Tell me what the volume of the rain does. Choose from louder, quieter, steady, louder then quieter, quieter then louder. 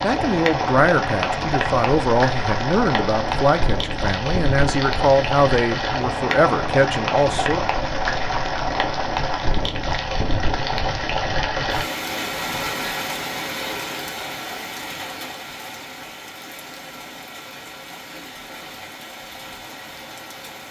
quieter.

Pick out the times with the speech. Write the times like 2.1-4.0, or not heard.
0.0-7.6.